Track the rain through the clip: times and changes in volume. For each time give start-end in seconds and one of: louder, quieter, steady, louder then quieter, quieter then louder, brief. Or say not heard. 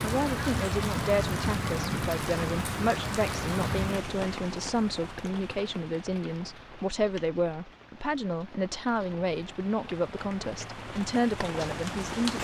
0.0-12.3 quieter then louder.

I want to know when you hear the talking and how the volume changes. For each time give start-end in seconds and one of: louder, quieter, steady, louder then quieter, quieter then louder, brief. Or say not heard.
0.0-12.3 steady.